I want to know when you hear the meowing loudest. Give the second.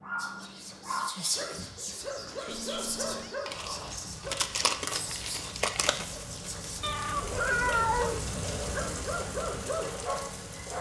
8 s.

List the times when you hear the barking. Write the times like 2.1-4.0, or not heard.
0.0-4.5, 7.2-10.7.